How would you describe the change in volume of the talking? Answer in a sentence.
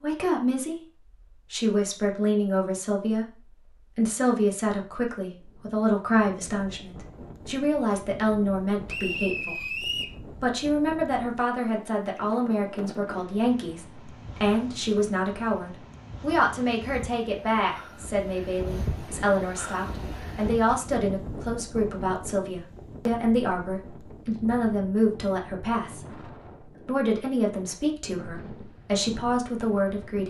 The loudness of the talking stays about the same.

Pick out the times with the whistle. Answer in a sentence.
You can hear the whistle from 8.8 to 10.2 s.